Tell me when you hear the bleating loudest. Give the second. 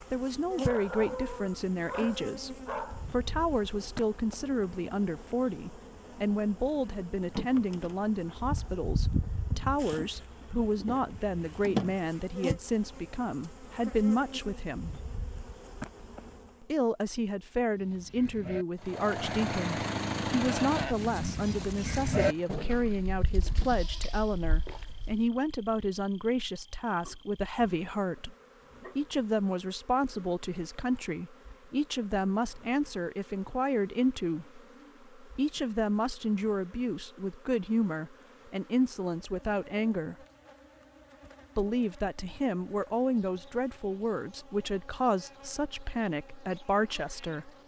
22 s.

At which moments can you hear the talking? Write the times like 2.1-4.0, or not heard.
0.1-14.9, 16.6-28.4, 28.9-40.1, 41.5-47.5.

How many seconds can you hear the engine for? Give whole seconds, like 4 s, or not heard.
4 s.